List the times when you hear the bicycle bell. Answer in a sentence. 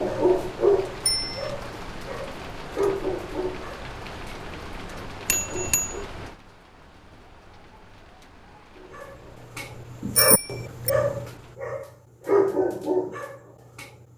You can hear the bicycle bell from 1.1 to 1.5 s, from 5.2 to 6.0 s and from 10.2 to 10.9 s.